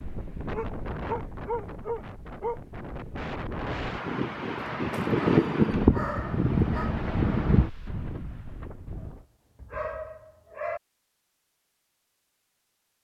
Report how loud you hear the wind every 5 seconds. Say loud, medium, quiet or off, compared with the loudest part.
medium, loud, off.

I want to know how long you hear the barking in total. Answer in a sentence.
You can hear the barking for 6 seconds altogether.